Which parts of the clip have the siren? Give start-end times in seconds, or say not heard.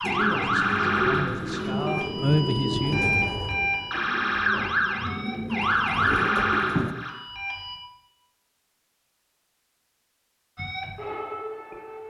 0.0-7.8, 10.6-12.0.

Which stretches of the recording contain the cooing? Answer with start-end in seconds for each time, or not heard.
0.0-7.0.